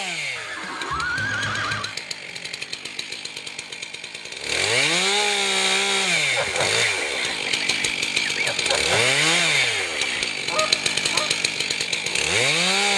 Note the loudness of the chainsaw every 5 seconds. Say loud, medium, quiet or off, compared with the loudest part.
medium, loud, loud.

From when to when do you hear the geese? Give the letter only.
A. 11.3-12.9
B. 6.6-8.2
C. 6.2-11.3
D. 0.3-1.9
C.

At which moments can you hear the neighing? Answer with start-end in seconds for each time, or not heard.
0.3-1.9.